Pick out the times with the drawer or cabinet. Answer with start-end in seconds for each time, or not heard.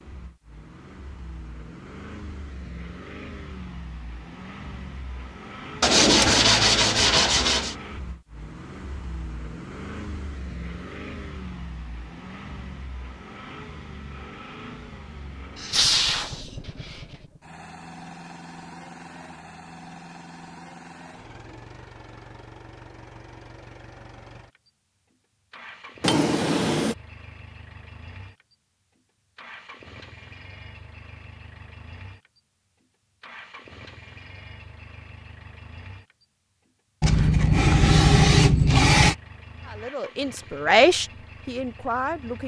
5.8-7.2, 26.0-26.9.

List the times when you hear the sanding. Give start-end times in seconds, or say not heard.
5.8-7.8, 15.6-17.0, 37.0-39.1.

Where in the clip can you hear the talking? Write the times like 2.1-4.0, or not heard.
39.6-42.4.